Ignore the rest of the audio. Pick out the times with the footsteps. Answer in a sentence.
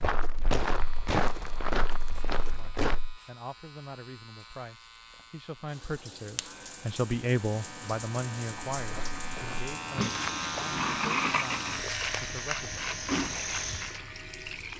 The footsteps can be heard from 0.0 to 3.1 s and from 8.8 to 14.0 s.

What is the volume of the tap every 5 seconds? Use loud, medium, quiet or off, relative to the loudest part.
off, medium, loud.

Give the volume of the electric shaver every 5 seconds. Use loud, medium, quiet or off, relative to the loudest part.
quiet, medium, loud.